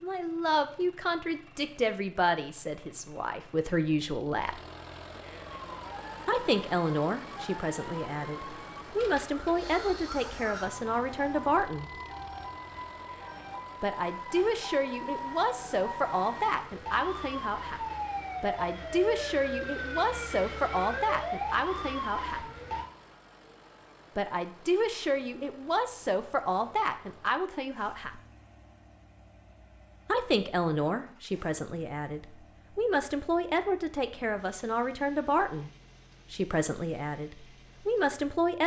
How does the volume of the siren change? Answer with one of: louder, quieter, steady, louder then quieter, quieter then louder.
louder.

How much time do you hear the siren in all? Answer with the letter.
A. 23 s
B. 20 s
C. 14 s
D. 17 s
D.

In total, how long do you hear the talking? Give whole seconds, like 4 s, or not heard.
31 s.